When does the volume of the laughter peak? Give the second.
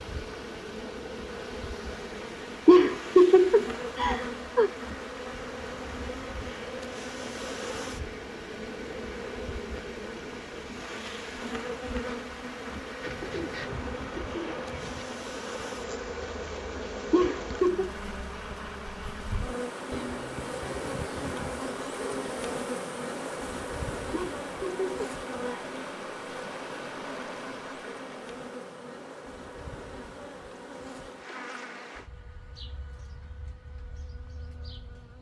3 s.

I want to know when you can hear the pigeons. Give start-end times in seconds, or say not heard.
13.0-15.1, 19.9-22.4.